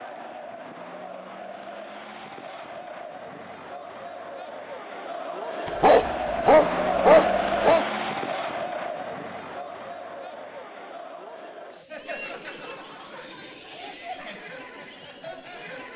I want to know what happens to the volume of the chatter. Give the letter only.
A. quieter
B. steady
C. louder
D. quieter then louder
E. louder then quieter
E.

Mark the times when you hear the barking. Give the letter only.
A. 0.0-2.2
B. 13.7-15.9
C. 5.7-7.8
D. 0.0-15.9
C.